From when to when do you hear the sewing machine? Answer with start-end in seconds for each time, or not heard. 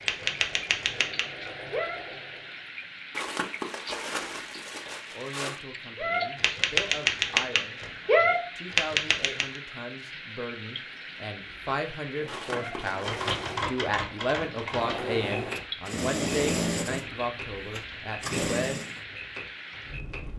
0.0-2.8, 11.4-19.0.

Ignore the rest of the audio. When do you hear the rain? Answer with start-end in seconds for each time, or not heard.
0.0-20.3.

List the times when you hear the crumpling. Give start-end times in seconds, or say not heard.
3.1-5.6, 12.2-13.7.